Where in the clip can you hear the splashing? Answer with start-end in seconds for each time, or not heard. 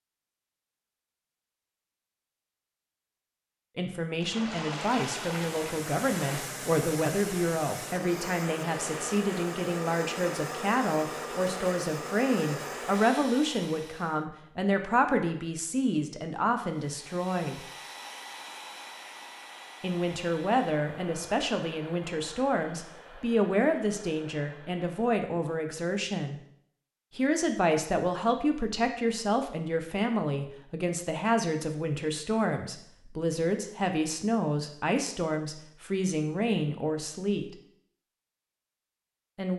4.2-6.5.